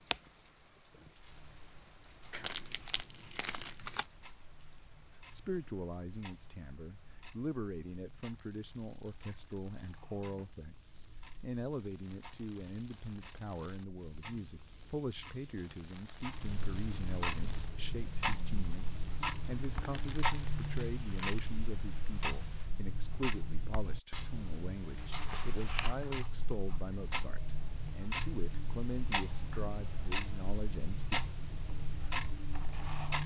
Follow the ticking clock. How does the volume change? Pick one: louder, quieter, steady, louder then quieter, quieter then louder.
louder.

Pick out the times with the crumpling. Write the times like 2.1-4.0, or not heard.
2.3-4.0, 19.8-21.4.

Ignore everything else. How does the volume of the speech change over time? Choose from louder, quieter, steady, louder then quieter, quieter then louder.
steady.